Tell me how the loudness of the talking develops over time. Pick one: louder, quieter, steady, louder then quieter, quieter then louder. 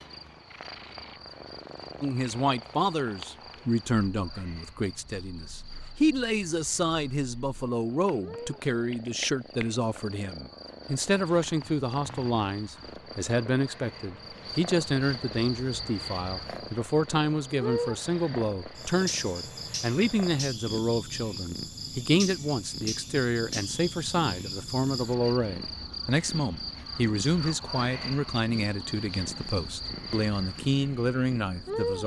steady.